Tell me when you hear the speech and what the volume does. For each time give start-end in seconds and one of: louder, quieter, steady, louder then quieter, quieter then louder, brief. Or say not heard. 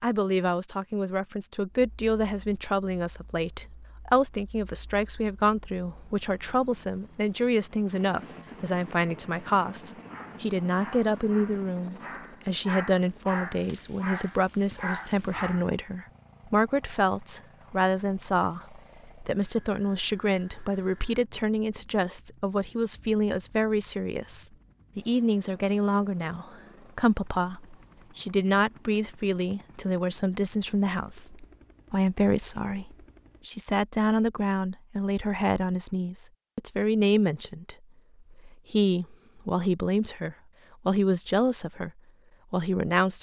0.0-41.9 steady
42.5-43.1 brief.